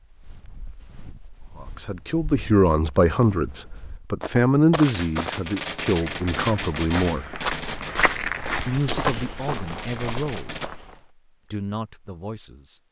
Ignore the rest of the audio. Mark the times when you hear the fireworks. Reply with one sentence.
The fireworks can be heard from 4.7 to 10.7 s.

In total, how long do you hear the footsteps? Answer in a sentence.
You can hear the footsteps for 11 seconds altogether.